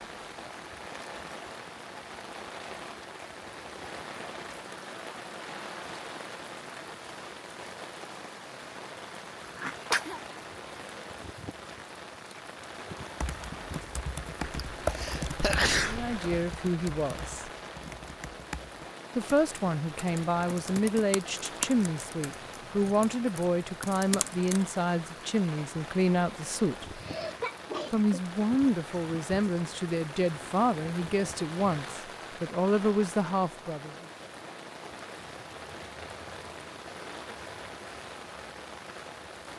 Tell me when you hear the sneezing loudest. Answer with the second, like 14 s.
16 s.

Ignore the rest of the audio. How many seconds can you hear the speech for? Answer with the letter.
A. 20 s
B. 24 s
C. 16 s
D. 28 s
C.